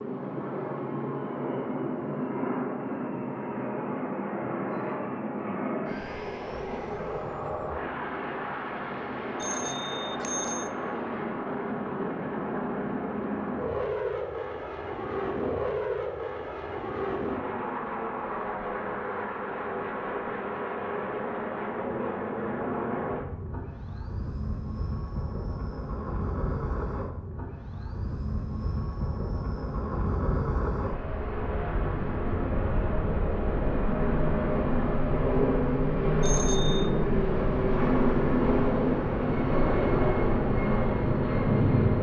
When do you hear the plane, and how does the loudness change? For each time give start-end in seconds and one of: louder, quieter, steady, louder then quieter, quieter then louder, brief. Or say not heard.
0.0-41.9 louder.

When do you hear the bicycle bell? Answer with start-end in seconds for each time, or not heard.
9.4-10.7, 36.2-36.9.